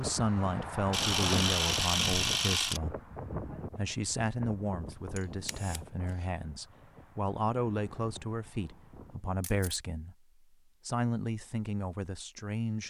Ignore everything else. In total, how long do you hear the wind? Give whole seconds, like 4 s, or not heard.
9 s.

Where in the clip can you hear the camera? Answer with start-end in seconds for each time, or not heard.
0.9-2.8, 5.2-5.8, 9.4-9.8.